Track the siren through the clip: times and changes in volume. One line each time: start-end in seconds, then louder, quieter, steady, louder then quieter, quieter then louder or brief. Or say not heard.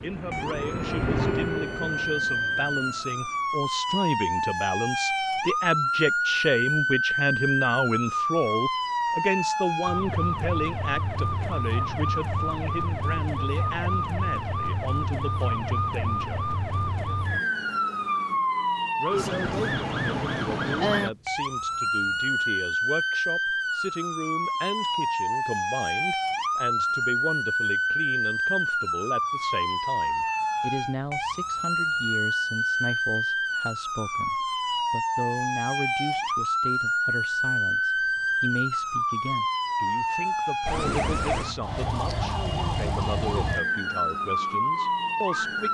0.3-45.7 steady.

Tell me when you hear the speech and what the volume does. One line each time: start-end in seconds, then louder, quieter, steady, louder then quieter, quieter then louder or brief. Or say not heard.
0.0-16.5 louder then quieter
18.9-45.7 steady.